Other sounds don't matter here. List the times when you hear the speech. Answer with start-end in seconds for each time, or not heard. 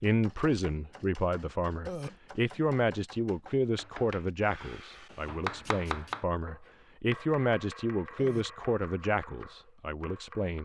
0.0-10.6.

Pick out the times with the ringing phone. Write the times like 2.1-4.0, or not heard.
not heard.